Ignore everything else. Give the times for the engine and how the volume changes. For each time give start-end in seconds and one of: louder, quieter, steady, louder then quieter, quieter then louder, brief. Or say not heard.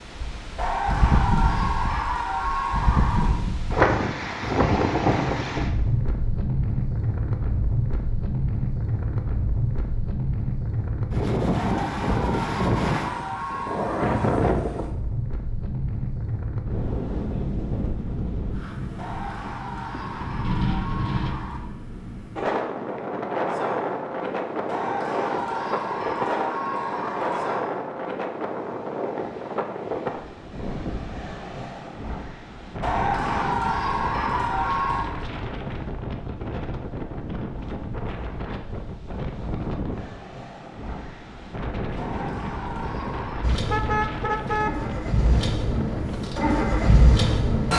43.4-47.7 louder.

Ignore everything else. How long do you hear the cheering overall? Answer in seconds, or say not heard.
15 s.